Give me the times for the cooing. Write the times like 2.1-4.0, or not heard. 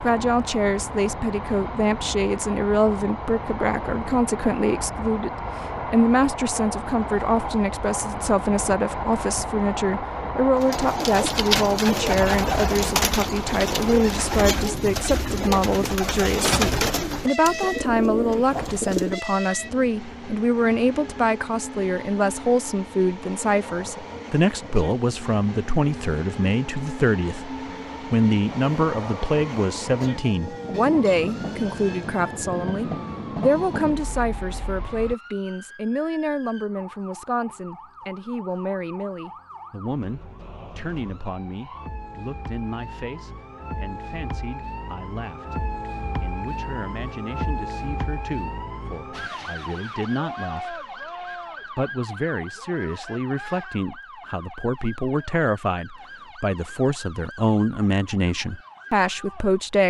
10.6-19.2.